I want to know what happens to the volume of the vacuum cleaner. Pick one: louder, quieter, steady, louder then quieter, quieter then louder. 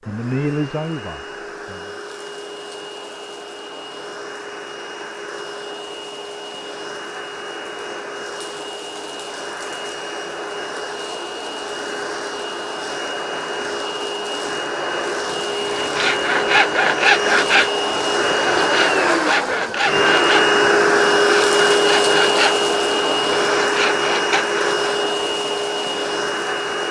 louder.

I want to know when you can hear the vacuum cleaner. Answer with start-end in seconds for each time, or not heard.
0.0-26.8.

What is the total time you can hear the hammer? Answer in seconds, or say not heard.
not heard.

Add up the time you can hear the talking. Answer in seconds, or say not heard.
2 s.